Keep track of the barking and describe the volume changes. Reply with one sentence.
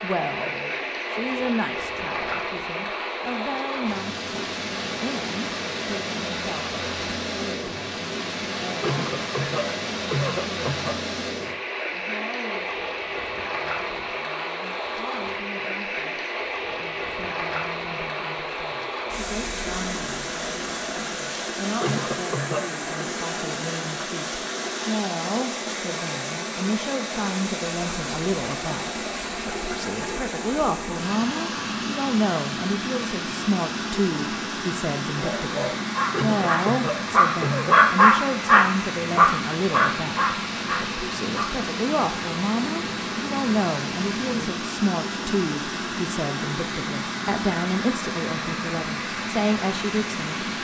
The volume of the barking goes up, then down.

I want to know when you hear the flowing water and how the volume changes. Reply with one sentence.
You can hear the flowing water from 0.0 to 50.6 s, at a steady volume.